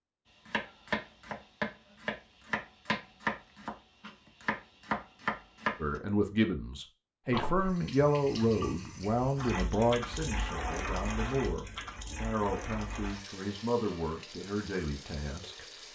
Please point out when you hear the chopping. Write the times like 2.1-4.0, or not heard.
0.5-6.0.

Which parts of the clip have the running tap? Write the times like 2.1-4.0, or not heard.
7.3-15.8.